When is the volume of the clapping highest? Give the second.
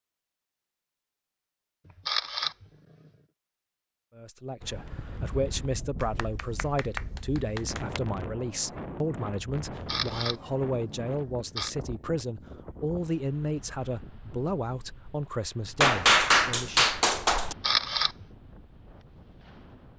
16 s.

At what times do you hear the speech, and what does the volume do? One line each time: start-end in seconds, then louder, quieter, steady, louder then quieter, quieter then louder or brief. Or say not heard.
4.2-16.9 steady.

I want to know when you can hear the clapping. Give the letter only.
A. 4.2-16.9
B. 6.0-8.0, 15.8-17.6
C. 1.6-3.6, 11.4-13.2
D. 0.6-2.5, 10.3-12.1
B.